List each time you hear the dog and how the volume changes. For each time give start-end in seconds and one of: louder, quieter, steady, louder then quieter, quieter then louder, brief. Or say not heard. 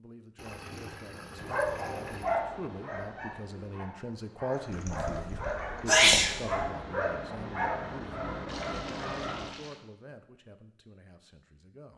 1.4-9.5 quieter then louder.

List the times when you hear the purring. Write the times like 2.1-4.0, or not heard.
not heard.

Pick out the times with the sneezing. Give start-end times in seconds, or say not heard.
4.8-6.7.